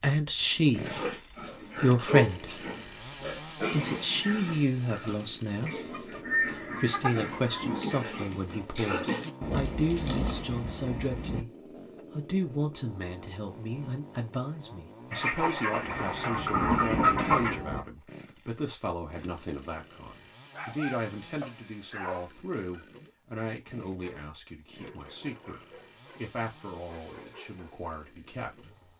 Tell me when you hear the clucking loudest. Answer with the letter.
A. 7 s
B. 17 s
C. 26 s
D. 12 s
B.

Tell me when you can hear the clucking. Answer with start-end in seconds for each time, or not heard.
5.7-7.7, 15.1-17.6.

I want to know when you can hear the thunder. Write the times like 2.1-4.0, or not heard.
9.4-11.4, 15.8-17.9.